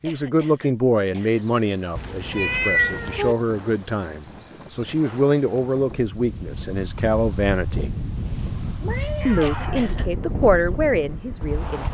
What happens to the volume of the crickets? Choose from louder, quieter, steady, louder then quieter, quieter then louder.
quieter.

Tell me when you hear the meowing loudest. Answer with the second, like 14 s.
3 s.